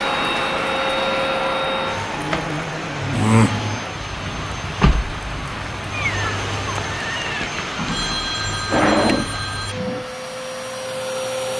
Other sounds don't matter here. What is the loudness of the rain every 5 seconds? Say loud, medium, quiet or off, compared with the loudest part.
loud, loud, off.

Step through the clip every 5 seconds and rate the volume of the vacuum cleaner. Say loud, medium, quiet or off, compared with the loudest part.
loud, medium, loud.